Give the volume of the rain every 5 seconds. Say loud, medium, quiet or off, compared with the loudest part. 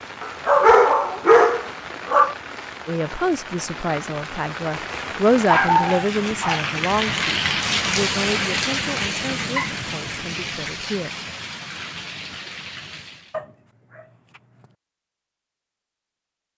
medium, loud, medium, off.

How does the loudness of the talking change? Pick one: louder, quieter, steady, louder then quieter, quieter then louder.
louder then quieter.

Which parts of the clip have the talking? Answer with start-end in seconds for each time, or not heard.
2.9-11.2.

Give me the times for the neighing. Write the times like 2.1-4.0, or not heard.
not heard.